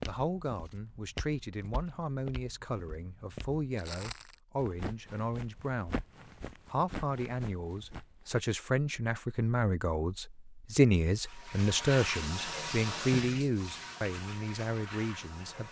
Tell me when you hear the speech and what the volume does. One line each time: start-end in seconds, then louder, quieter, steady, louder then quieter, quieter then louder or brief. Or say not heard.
0.1-6.0 steady
6.7-15.6 louder then quieter.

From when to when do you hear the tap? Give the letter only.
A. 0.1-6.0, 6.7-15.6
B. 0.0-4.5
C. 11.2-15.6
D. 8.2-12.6
C.